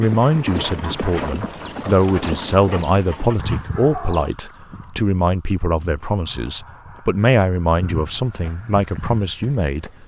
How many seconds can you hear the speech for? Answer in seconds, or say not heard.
10 s.